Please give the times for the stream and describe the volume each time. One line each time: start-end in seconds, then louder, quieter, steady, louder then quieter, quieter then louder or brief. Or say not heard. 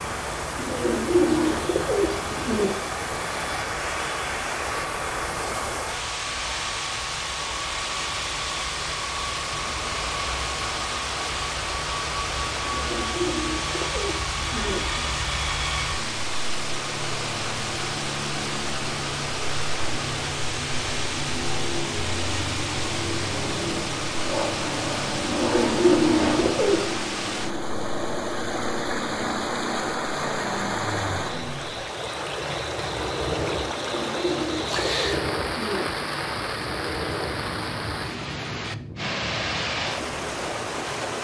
0.0-41.1 steady.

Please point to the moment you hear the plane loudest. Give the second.
26 s.